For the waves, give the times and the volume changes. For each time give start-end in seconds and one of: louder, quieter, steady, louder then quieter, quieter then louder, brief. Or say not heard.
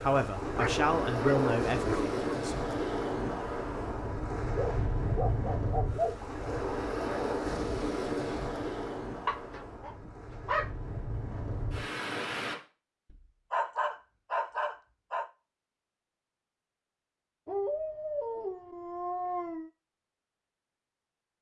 0.0-12.6 quieter.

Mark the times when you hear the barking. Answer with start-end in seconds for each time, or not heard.
0.4-2.4, 4.5-6.2, 9.2-10.8, 13.5-15.3, 17.4-19.7.